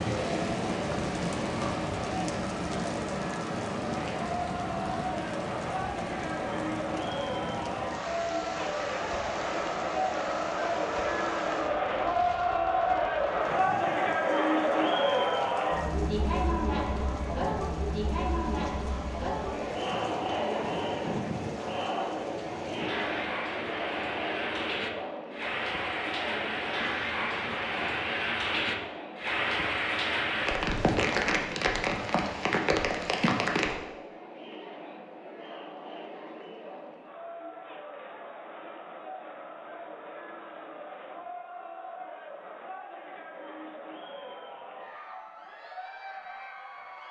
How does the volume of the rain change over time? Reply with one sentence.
The volume of the rain goes down, then up.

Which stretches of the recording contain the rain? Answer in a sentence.
You can hear the rain from 0.0 to 33.8 s.